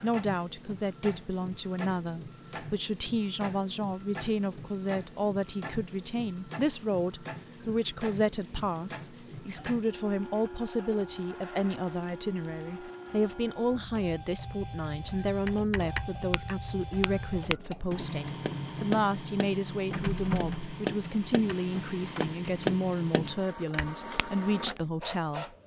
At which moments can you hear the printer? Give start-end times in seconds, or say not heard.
0.0-25.6.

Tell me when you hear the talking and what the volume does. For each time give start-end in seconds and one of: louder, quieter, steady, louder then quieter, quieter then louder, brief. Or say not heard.
0.0-25.4 steady.